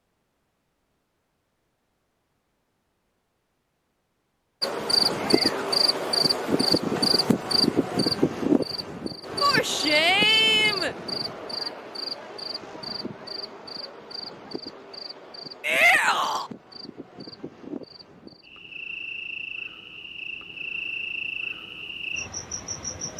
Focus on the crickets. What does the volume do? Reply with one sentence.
The loudness of the crickets goes down, then up.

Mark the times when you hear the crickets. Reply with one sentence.
You can hear the crickets from 4.6 to 23.1 s.